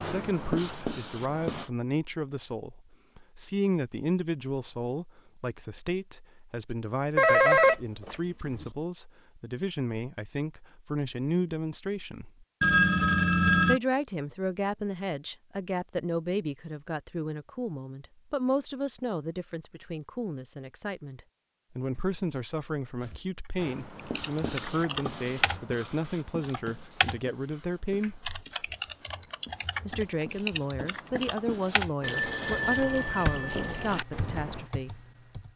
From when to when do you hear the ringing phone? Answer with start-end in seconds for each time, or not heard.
7.2-8.7, 12.6-13.8, 32.0-34.0.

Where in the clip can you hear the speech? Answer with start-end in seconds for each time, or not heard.
0.0-12.4, 13.7-28.2, 29.9-35.0.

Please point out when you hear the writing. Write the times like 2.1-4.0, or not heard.
0.0-1.7, 23.0-34.7.